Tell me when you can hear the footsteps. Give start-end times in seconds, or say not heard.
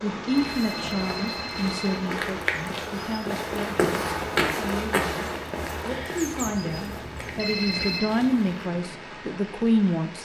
0.3-8.5.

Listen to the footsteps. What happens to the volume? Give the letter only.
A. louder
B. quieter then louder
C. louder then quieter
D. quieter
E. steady
C.